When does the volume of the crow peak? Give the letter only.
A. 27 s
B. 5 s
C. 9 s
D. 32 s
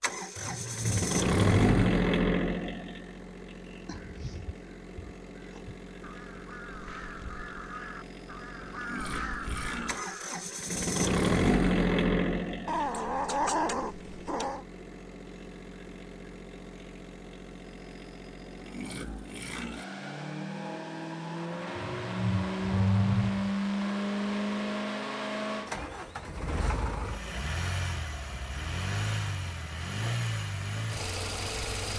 C.